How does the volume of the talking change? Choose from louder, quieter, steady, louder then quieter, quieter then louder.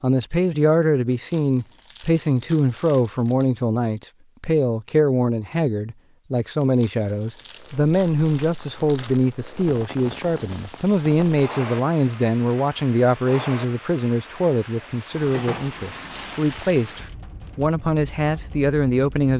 steady.